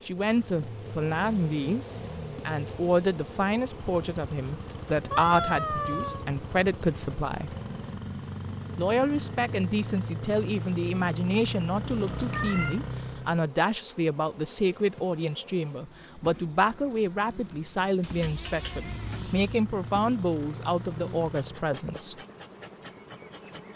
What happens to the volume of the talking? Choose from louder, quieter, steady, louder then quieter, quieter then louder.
steady.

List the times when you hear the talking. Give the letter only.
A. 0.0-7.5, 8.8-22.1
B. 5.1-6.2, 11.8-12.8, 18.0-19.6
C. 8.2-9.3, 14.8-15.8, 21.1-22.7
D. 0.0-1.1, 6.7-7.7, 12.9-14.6
A.